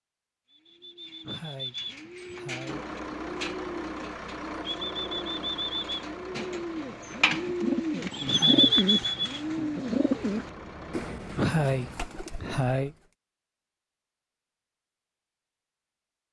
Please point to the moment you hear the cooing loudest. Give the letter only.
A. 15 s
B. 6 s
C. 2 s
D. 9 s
D.